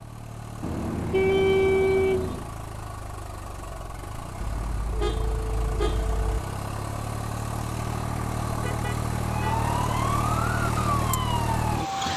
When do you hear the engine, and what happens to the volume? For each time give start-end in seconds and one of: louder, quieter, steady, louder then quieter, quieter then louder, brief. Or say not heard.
0.0-12.1 louder.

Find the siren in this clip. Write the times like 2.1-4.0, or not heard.
9.2-12.0.